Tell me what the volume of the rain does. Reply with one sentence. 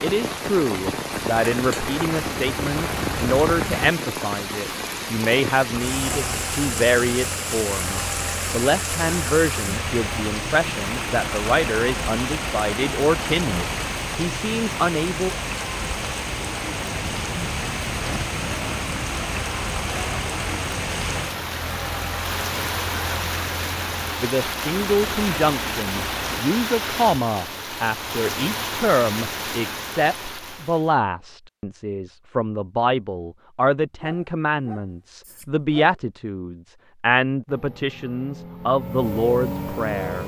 The loudness of the rain stays about the same.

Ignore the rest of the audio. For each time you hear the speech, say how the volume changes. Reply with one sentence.
The speech can be heard from 0.0 to 15.3 s, at a steady volume; and from 24.2 to 40.2 s, at a steady volume.